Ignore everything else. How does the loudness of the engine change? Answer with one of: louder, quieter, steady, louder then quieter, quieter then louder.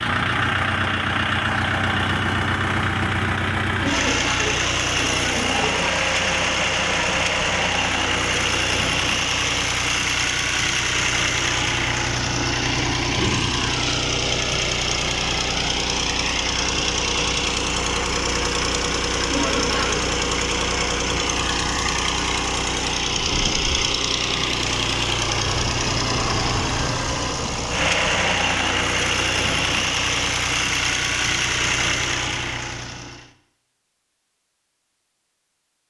steady.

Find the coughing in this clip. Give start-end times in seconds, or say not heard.
3.8-5.7, 19.3-20.0.